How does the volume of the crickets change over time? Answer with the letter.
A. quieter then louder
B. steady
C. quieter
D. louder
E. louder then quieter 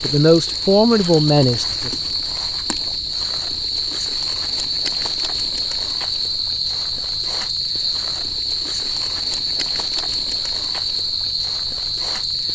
B.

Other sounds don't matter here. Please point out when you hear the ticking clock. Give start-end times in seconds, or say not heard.
not heard.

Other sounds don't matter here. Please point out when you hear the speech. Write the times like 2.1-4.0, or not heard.
0.0-2.0.